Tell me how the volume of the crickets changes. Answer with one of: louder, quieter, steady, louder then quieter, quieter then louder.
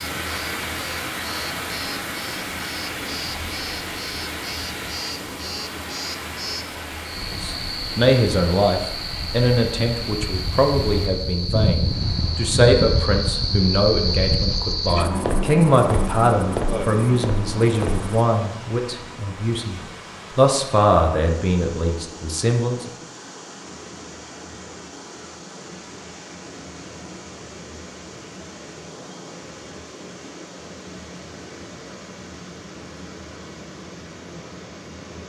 louder.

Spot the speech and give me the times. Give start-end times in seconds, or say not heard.
7.4-22.9.